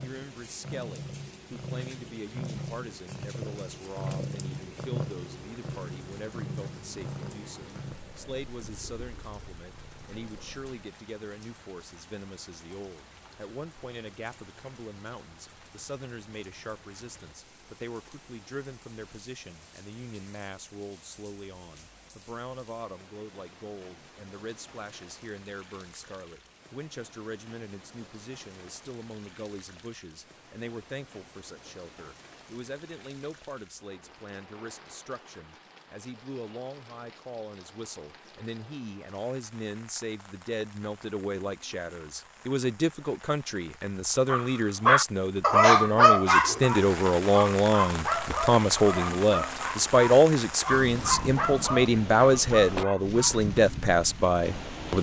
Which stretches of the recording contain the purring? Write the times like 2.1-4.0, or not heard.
0.0-10.8.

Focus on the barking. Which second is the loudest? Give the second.
46 s.